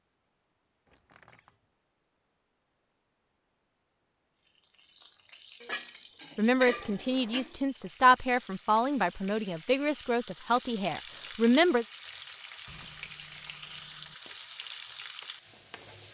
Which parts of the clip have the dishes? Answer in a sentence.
You can hear the dishes from 5.6 to 7.6 s.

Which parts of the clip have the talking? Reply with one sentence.
The talking can be heard from 6.3 to 11.8 s.